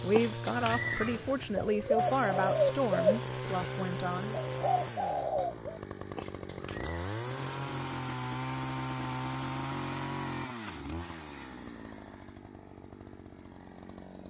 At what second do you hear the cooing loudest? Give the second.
3 s.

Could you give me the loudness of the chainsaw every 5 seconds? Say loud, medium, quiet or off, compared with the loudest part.
loud, loud, medium.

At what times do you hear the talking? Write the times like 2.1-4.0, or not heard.
0.0-4.3.